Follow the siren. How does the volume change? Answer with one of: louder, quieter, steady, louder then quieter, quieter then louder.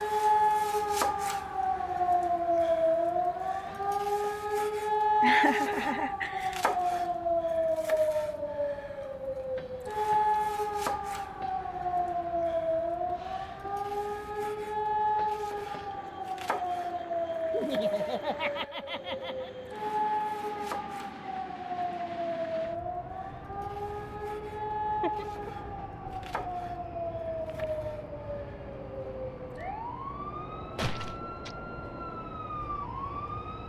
quieter.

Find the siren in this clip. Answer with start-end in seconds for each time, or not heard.
0.0-33.6.